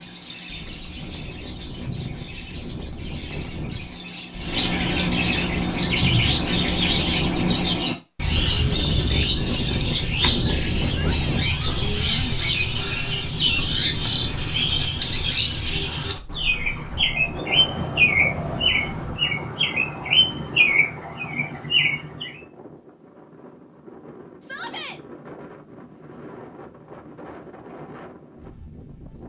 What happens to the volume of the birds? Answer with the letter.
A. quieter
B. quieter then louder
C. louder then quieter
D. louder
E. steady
D.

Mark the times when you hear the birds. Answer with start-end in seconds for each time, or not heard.
0.0-22.4.